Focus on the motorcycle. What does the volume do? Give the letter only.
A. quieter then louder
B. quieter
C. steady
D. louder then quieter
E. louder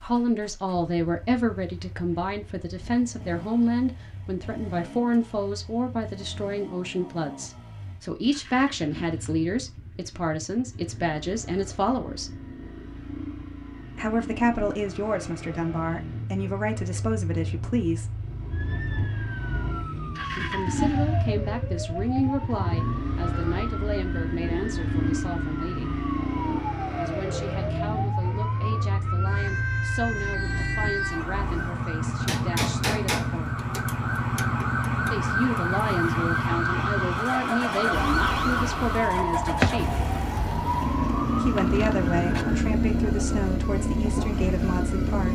E.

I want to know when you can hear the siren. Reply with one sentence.
The siren can be heard from 18.5 to 45.3 s.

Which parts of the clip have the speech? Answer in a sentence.
You can hear the speech from 0.0 to 12.4 s, from 13.9 to 18.1 s, from 20.4 to 25.9 s, from 27.0 to 33.6 s, from 35.1 to 39.9 s and from 41.3 to 45.3 s.